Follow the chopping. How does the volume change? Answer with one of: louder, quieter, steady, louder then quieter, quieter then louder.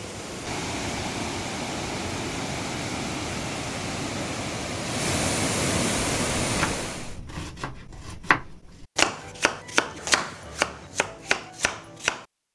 louder then quieter.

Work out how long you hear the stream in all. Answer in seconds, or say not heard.
7 s.